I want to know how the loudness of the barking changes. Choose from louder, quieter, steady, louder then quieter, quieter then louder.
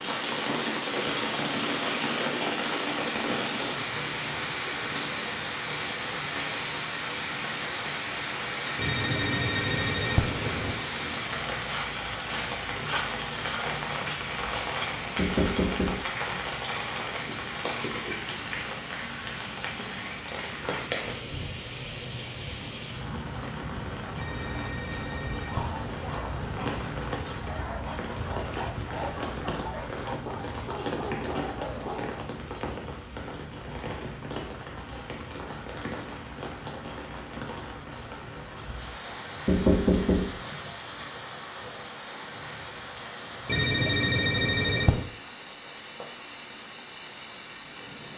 steady.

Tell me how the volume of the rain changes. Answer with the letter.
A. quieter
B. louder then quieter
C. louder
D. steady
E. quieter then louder
A.